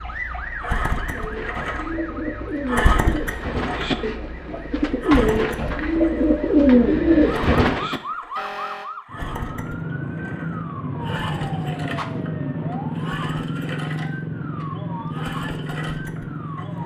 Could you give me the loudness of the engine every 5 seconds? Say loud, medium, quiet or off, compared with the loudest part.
loud, medium, medium, medium.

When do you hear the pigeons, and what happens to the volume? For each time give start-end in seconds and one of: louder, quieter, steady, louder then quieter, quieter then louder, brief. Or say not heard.
1.1-8.0 louder.